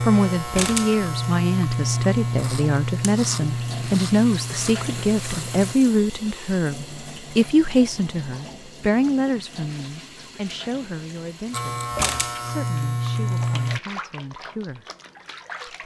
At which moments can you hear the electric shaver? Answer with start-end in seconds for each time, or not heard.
0.0-5.8, 11.5-13.8.